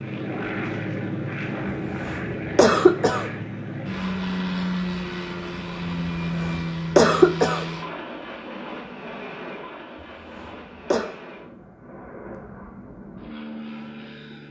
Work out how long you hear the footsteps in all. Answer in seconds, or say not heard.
not heard.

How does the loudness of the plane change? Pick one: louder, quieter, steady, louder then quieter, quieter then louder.
quieter.